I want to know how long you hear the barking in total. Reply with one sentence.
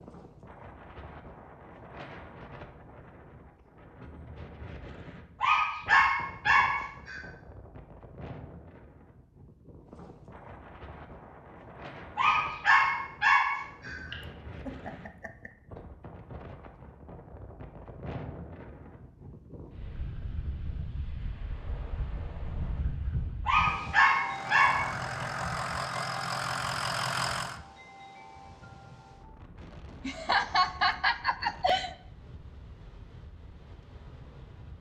The barking can be heard for 5 seconds in total.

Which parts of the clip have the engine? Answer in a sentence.
You can hear the engine from 24.2 to 27.6 s.